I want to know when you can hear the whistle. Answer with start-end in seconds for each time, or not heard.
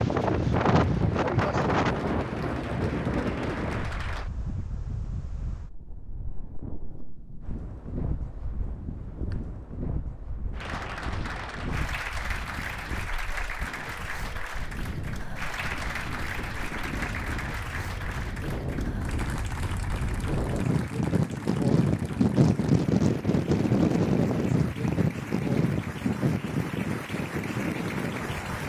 not heard.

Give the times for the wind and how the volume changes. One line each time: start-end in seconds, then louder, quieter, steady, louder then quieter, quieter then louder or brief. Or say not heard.
0.0-28.6 quieter then louder.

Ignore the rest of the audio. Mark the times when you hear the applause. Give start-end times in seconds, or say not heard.
0.2-4.3, 10.5-28.6.